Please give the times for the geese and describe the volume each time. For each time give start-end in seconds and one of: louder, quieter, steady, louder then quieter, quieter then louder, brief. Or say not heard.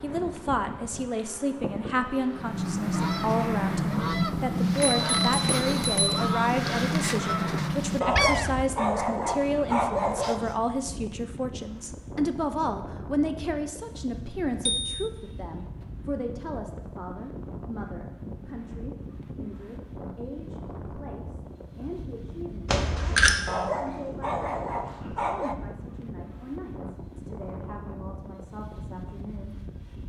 2.4-8.8 steady.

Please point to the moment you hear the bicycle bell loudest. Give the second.
23 s.